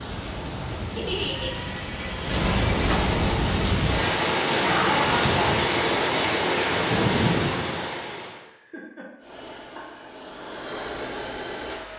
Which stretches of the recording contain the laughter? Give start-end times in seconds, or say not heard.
0.9-1.5, 4.6-5.5, 8.4-10.2.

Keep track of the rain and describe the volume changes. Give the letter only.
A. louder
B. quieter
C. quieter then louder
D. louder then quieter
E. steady
A.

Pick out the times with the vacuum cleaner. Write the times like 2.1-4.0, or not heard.
0.0-3.3, 9.2-11.9.